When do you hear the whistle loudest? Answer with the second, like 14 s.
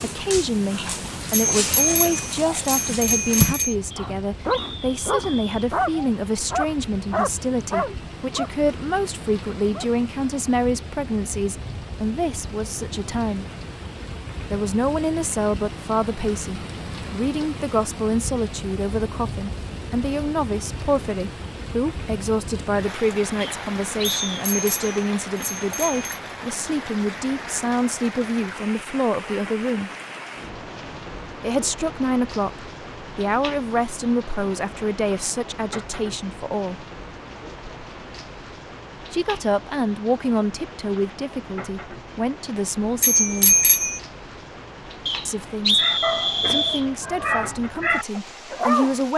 46 s.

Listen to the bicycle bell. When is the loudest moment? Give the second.
44 s.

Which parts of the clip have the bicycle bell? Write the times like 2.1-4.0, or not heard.
1.3-3.8, 24.2-26.2, 43.0-44.0.